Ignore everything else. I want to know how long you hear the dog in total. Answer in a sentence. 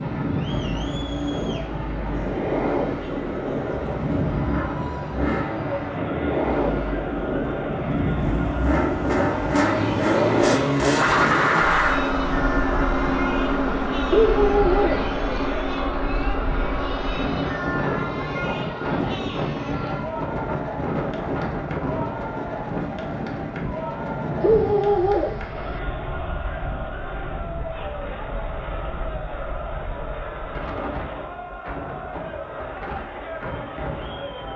You can hear the dog for 3 seconds altogether.